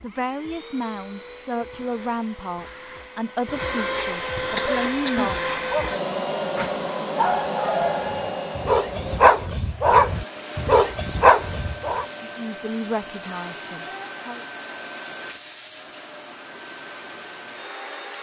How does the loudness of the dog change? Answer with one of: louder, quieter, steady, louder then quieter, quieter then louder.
louder.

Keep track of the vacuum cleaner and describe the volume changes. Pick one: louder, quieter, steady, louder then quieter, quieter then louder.
louder then quieter.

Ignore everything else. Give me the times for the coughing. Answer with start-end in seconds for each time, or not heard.
4.5-5.3.